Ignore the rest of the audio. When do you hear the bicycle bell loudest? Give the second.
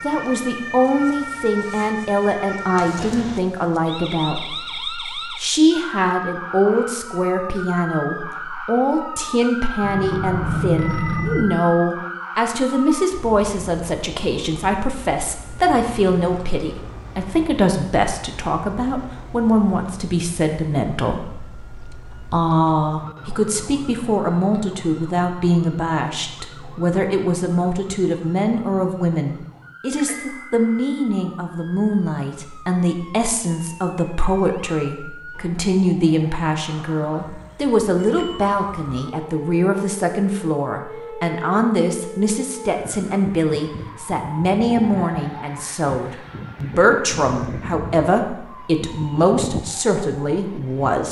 11 s.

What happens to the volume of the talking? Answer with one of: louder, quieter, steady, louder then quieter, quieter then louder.
steady.